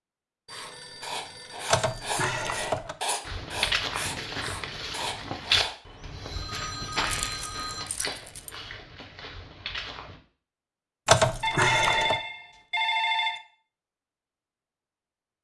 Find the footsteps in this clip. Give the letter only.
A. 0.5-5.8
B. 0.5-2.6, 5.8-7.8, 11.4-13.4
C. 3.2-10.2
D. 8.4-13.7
C.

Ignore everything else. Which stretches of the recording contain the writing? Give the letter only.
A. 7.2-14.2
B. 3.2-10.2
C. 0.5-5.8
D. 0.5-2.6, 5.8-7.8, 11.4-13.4
C.